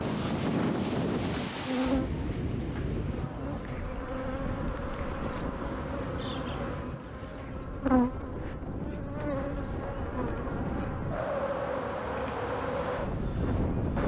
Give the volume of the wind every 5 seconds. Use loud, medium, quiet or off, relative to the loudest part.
loud, medium, loud.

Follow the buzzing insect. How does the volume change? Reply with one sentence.
The loudness of the buzzing insect goes up, then down.